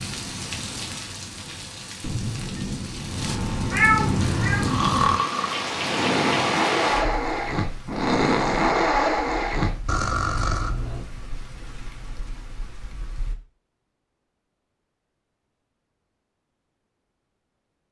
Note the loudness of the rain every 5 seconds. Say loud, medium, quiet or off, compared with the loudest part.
loud, loud, quiet, off.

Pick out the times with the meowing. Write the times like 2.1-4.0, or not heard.
3.7-4.7.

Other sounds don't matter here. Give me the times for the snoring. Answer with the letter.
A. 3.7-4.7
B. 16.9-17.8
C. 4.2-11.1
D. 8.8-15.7
C.